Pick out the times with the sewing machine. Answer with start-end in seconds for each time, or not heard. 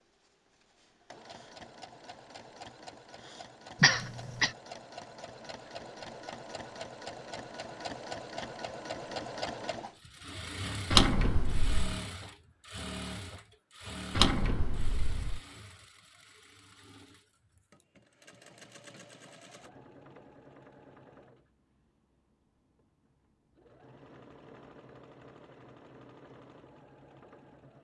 0.0-27.7.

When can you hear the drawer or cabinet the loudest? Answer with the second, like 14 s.
11 s.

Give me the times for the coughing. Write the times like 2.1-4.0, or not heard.
3.8-4.5.